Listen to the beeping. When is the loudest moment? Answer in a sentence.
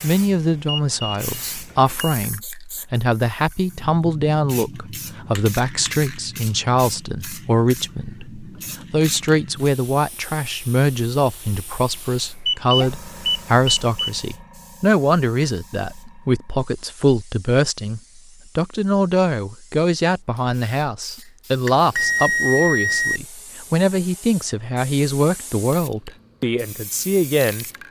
The loudest moment of the beeping is at 22 seconds.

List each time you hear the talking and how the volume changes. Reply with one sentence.
The talking can be heard from 0.0 to 27.6 s, at a steady volume.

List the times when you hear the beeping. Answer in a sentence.
You can hear the beeping from 0.7 to 2.1 s, from 12.4 to 14.1 s and from 21.6 to 23.2 s.